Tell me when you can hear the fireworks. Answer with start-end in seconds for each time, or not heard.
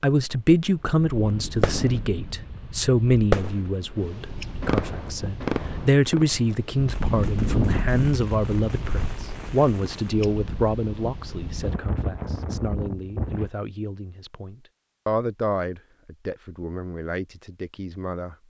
1.6-2.3, 3.2-4.0, 4.6-10.1.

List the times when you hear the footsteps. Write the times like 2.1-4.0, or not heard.
not heard.